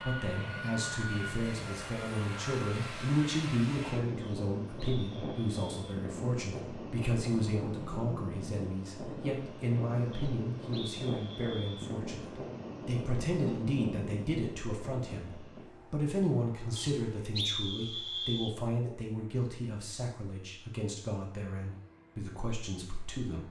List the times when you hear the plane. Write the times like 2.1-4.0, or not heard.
0.0-23.4.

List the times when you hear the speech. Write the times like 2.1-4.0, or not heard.
0.0-23.4.